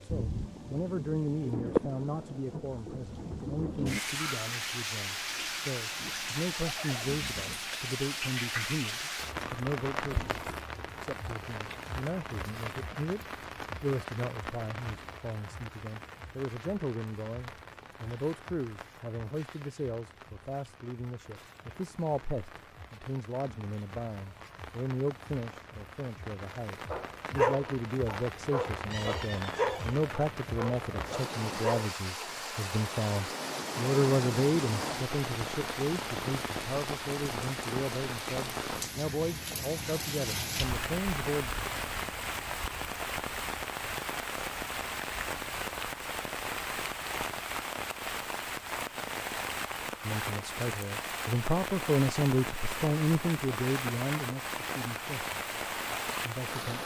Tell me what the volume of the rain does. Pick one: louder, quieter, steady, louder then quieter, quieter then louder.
quieter then louder.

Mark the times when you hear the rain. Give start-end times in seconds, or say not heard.
0.0-56.8.